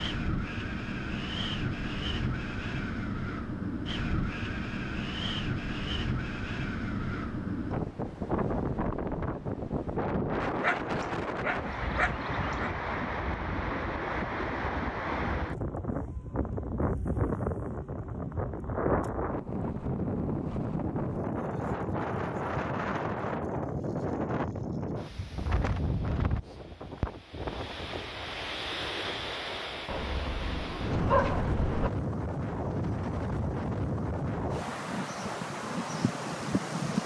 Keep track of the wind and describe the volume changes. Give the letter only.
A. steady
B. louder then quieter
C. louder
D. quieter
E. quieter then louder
A.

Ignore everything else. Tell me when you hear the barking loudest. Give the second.
31 s.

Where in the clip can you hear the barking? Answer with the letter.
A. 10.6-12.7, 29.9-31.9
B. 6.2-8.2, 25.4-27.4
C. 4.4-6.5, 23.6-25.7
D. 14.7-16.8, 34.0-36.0
A.